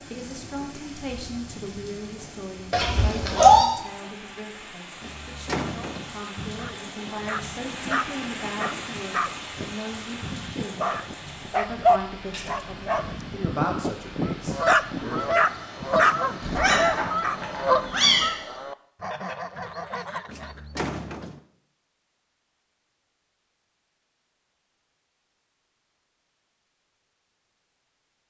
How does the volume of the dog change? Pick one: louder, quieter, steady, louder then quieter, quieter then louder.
louder.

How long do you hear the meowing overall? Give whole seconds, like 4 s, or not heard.
3 s.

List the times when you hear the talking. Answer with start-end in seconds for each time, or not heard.
0.0-15.4.